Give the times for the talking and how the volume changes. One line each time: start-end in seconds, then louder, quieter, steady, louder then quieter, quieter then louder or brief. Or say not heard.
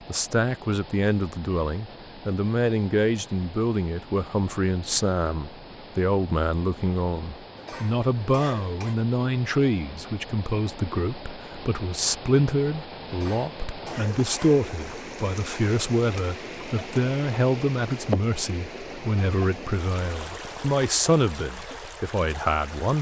0.1-22.9 steady.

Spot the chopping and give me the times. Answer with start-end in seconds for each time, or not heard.
not heard.